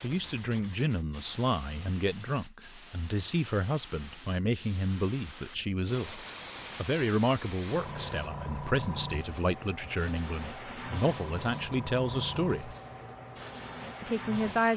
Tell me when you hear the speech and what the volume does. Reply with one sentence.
The speech can be heard from 0.0 to 12.8 s, at a steady volume; and briefly from 14.0 to 14.7 s.